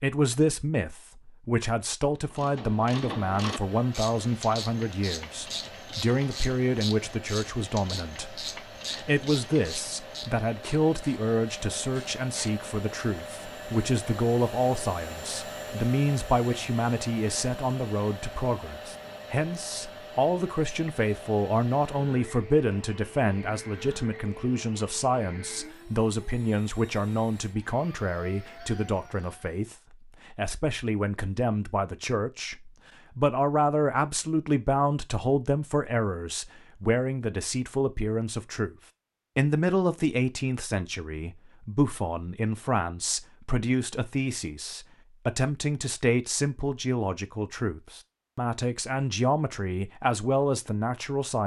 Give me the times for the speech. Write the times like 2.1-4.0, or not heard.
0.0-38.8, 39.4-51.4.